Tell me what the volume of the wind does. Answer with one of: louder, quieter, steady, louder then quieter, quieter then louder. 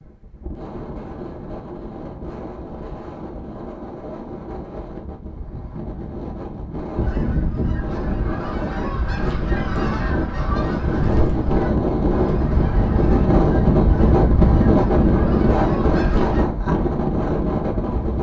louder.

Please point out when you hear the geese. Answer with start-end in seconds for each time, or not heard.
7.0-16.4.